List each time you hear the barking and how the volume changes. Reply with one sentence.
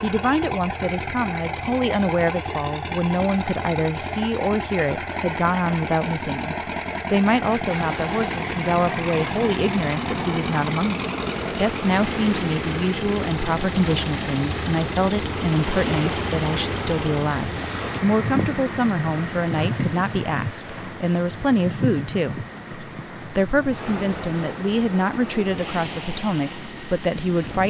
You can't hear the barking here.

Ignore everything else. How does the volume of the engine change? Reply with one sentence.
The volume of the engine goes down.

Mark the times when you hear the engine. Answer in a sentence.
You can hear the engine from 0.0 to 27.6 s.